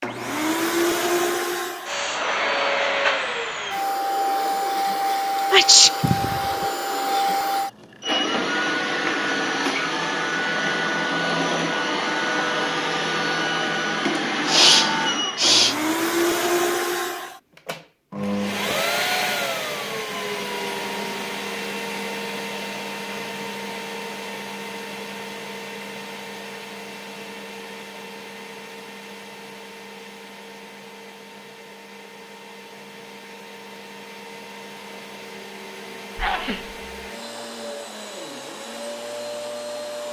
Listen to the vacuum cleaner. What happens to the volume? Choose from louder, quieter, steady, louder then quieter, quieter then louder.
quieter.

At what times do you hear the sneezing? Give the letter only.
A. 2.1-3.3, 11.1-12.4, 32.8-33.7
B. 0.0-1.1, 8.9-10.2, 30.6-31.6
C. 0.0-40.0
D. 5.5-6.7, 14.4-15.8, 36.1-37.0
D.